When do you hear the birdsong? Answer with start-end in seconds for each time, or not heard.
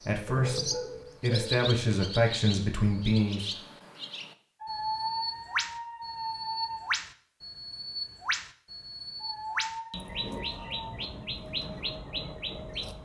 0.0-13.0.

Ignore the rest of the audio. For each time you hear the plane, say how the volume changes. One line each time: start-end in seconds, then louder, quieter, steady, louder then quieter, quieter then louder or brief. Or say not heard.
not heard.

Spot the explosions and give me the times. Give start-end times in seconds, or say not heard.
not heard.